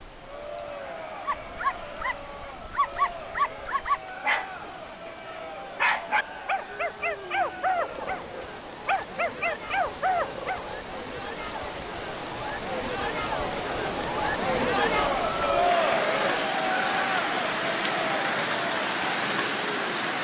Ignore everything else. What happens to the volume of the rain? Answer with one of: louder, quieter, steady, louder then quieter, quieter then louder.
louder.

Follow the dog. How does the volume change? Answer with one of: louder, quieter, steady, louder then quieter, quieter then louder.
steady.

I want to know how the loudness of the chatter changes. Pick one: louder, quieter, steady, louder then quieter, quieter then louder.
louder.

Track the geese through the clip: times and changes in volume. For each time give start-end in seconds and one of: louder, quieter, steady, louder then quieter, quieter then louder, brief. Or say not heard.
not heard.